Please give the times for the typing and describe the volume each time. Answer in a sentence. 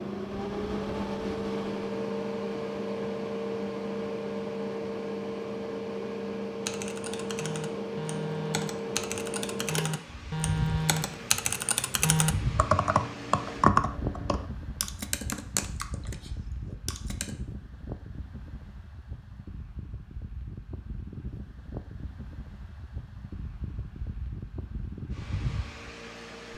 The typing can be heard from 6.7 to 17.4 s, getting louder then quieter.